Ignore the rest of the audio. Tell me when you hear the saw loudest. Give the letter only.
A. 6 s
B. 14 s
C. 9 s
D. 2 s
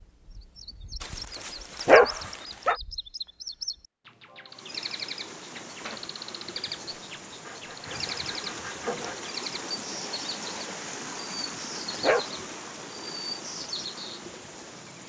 C.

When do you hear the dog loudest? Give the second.
2 s.